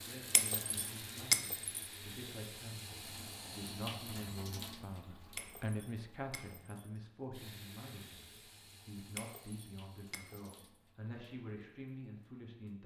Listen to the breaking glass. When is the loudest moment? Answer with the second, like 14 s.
1 s.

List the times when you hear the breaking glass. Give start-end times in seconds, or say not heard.
0.3-1.8, 5.3-6.9, 9.2-10.6.